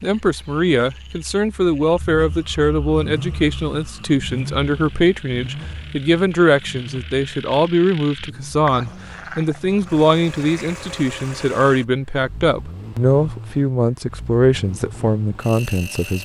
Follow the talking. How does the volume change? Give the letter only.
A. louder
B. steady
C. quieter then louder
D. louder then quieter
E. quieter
B.